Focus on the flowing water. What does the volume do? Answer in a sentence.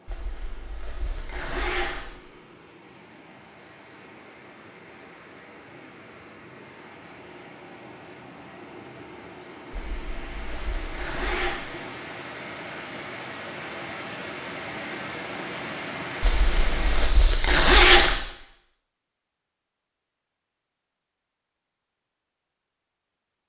The volume of the flowing water goes up.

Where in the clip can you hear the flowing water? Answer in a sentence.
The flowing water can be heard from 0.0 to 17.1 s.